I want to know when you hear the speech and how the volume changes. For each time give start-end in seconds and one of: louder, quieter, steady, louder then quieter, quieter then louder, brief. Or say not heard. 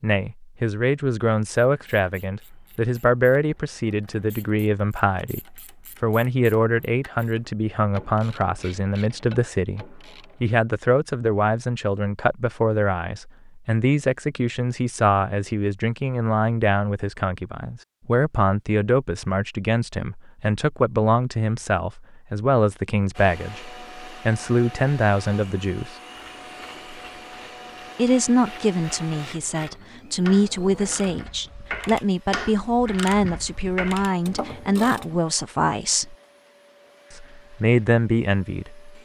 0.0-25.9 steady
27.9-36.1 steady
37.1-39.0 brief.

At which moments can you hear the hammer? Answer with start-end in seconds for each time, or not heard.
not heard.